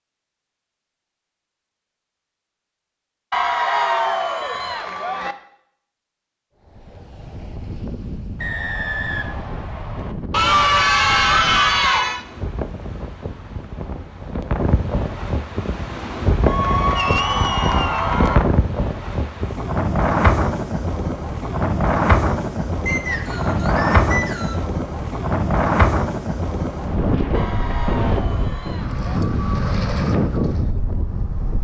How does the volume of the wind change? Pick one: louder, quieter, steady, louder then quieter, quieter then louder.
louder.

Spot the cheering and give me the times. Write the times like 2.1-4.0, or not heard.
3.3-5.3, 10.3-12.2, 16.4-18.4, 27.3-29.2.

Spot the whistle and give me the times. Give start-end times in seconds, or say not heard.
8.4-10.2, 22.9-24.6.